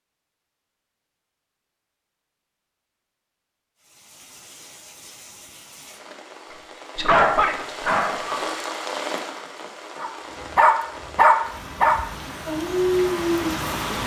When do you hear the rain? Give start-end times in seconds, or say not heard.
3.8-14.0.